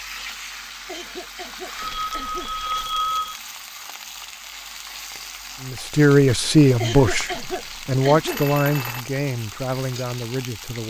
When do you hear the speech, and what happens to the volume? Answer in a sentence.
You can hear the speech from 5.6 to 10.8 s, getting quieter.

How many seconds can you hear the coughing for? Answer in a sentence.
You can hear the coughing for 3 seconds altogether.